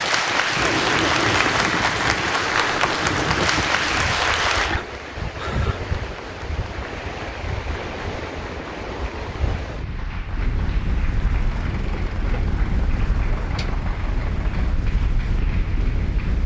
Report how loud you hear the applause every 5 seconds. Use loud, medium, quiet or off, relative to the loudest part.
loud, quiet, quiet, quiet.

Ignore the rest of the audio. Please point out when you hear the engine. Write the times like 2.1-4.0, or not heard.
11.3-14.8.